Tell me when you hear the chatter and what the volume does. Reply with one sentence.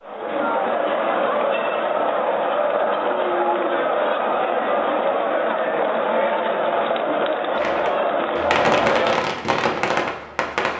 You can hear the chatter from 0.0 to 9.2 s, at a steady volume.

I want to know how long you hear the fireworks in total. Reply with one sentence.
The fireworks can be heard for 3 seconds in total.